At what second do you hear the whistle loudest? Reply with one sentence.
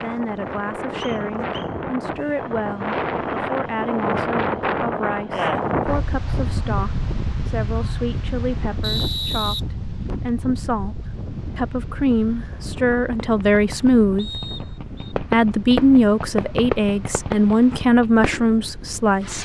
The loudest moment of the whistle is at 9 seconds.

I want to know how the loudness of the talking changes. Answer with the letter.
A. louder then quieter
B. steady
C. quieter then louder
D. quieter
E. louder
E.